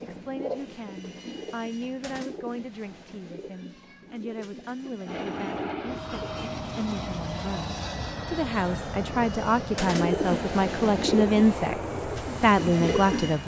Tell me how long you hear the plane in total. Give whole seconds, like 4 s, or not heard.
8 s.